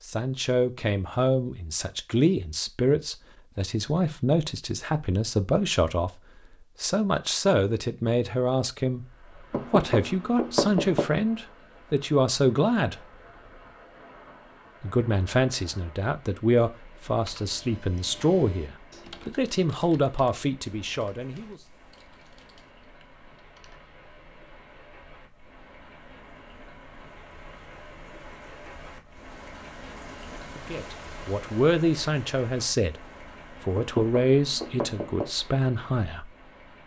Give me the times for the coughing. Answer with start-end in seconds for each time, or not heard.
not heard.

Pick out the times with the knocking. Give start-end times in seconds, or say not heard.
9.5-11.1, 33.8-35.2.